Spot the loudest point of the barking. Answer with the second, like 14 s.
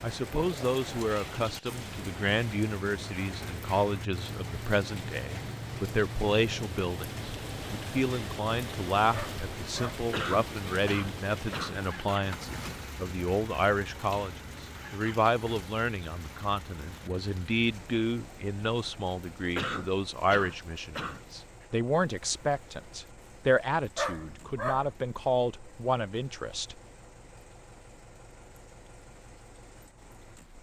24 s.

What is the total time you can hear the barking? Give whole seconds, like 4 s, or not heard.
2 s.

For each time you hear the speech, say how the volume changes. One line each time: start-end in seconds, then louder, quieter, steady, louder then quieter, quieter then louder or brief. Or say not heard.
0.0-26.8 steady.